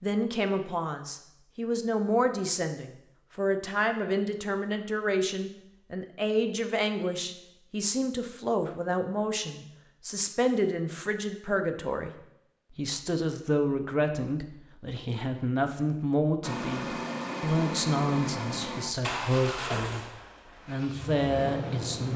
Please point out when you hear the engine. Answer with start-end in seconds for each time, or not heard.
16.4-22.1.